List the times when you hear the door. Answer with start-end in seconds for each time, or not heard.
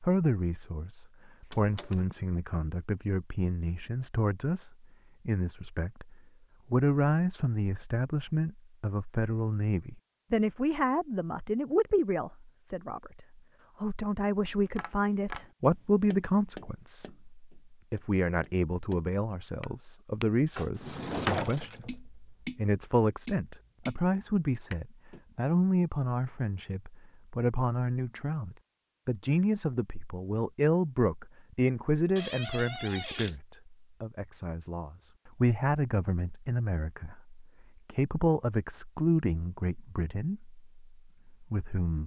1.4-2.0, 20.8-21.9, 32.1-33.4.